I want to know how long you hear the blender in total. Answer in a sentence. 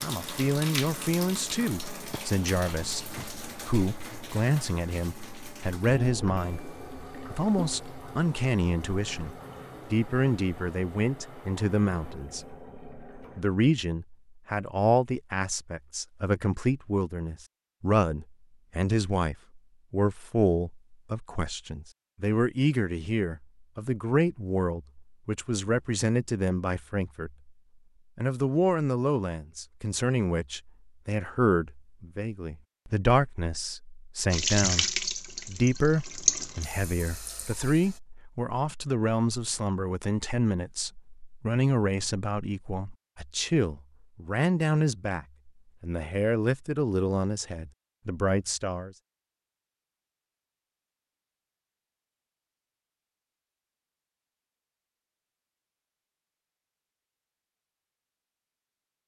You can't hear the blender here.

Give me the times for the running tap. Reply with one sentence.
The running tap can be heard from 0.0 to 13.4 s and from 34.3 to 38.0 s.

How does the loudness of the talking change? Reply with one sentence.
The loudness of the talking stays about the same.